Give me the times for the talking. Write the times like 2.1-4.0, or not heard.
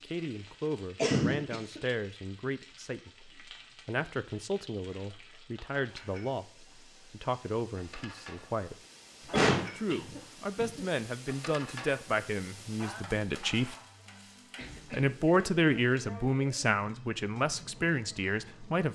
0.0-8.8, 9.8-13.8, 14.9-18.9.